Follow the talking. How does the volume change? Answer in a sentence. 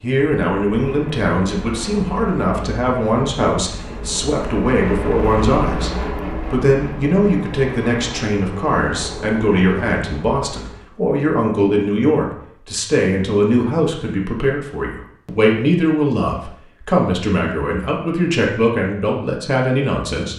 The volume of the talking stays about the same.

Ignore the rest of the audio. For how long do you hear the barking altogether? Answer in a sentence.
The barking can't be heard in this clip.